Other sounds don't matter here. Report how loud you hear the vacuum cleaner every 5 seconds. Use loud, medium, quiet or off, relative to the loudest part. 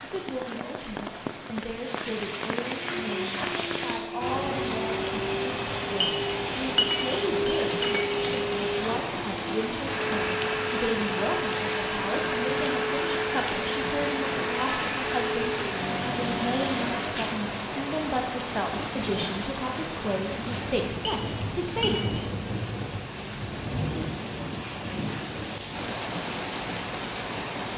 loud, loud, loud, loud, off, off.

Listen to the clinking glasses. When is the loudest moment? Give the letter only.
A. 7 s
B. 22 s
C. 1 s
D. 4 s
A.